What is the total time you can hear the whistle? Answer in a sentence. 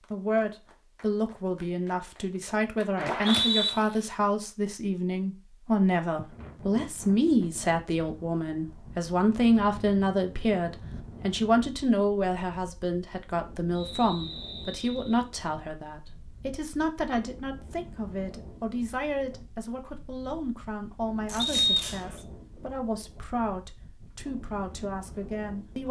The whistle can be heard for 3 seconds in total.